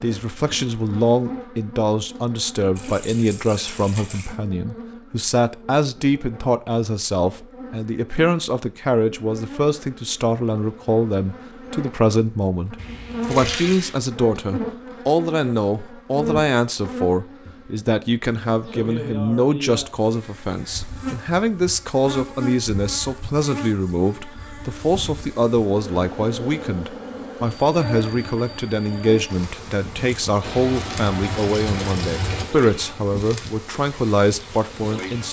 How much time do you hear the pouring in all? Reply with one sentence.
The pouring can be heard for 5 seconds in total.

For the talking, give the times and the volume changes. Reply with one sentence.
The talking can be heard from 0.0 to 35.2 s, at a steady volume.